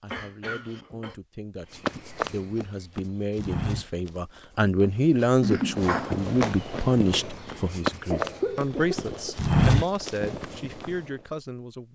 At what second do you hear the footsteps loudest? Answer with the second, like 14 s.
10 s.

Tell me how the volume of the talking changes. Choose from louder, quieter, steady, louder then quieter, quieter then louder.
louder then quieter.